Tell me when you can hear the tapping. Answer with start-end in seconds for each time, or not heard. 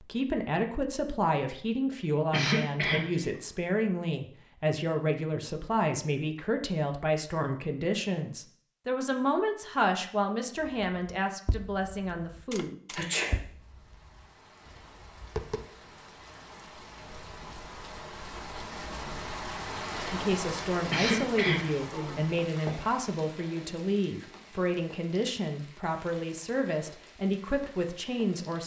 10.6-15.7.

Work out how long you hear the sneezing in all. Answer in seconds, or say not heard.
3 s.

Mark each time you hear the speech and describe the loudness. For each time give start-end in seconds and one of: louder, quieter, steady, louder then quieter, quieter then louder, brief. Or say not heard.
0.0-12.8 steady
20.1-28.6 steady.